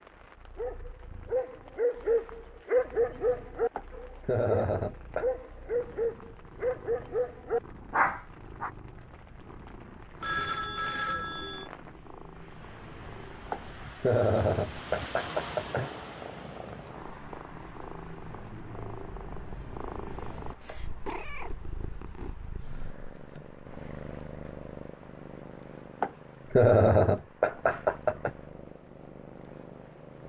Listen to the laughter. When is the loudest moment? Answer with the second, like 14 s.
27 s.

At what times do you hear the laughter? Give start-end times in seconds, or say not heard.
3.8-5.3, 13.5-15.9, 26.0-28.3.